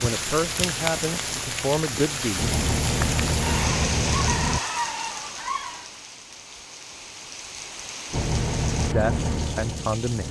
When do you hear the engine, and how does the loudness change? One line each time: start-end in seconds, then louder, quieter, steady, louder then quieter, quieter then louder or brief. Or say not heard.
0.0-4.6 louder
8.1-10.2 brief.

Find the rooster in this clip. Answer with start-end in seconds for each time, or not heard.
3.4-5.9.